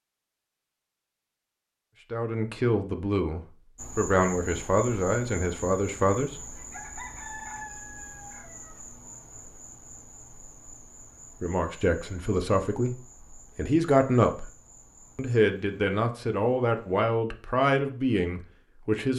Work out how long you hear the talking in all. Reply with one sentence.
You can hear the talking for 11 seconds altogether.